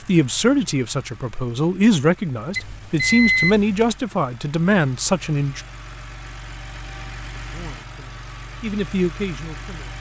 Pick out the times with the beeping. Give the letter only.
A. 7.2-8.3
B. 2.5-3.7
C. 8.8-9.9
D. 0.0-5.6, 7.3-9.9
B.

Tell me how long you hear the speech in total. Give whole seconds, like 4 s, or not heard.
8 s.